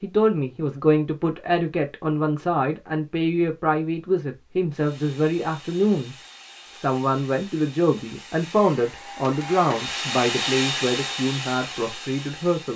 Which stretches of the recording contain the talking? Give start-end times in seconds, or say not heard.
0.0-6.2, 6.8-12.7.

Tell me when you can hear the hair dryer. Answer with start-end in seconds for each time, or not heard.
4.7-12.7.